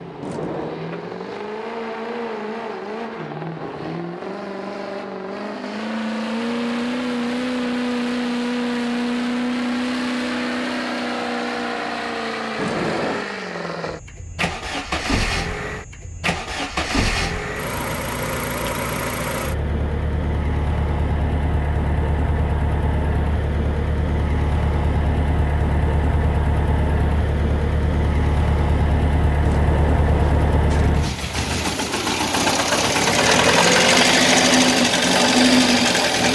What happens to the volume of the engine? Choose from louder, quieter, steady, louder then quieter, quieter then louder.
louder.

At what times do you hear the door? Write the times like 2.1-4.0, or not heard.
0.2-0.8, 12.6-13.3, 29.4-31.1.